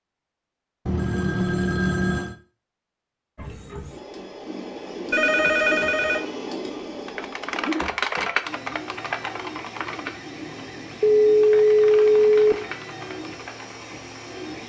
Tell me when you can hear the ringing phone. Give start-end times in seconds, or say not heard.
0.8-2.4, 5.1-6.2, 11.0-12.6.